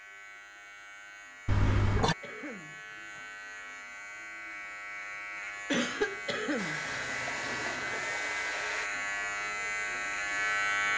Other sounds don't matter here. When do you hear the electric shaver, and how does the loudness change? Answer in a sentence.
You can hear the electric shaver from 0.0 to 10.9 s, getting louder.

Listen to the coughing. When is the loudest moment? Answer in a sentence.
The volume of the coughing peaks at 6 seconds.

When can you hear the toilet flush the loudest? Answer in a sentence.
The volume of the toilet flush peaks at 2 seconds.